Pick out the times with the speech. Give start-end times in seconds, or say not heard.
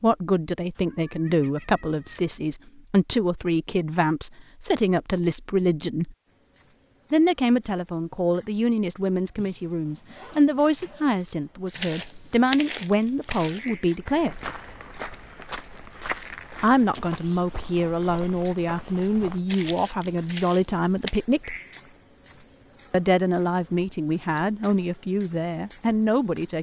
0.0-6.2, 7.1-14.4, 16.6-21.6, 22.9-26.5.